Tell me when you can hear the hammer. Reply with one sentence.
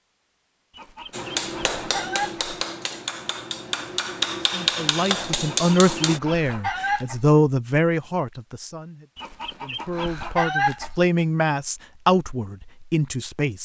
The hammer can be heard from 1.1 to 6.2 s.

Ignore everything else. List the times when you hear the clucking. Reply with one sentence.
You can hear the clucking from 0.8 to 2.5 s, from 5.5 to 7.3 s and from 9.2 to 11.1 s.